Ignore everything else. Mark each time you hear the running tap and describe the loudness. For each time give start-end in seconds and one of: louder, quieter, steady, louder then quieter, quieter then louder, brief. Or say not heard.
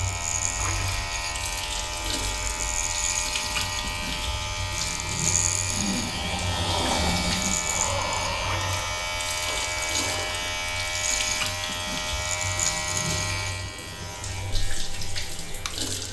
0.0-16.0 steady.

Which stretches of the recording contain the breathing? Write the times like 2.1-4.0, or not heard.
5.7-10.3.